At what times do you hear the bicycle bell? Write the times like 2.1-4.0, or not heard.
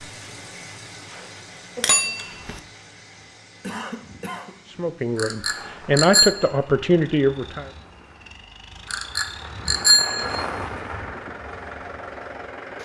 1.8-2.6, 5.2-6.3, 8.9-10.4.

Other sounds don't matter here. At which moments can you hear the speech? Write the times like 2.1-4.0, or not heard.
4.7-7.7.